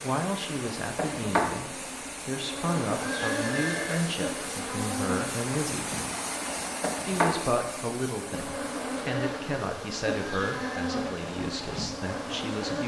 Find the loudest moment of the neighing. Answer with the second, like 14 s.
4 s.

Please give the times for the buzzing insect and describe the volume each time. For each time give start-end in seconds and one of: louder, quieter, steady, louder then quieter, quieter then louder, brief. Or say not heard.
0.0-12.8 steady.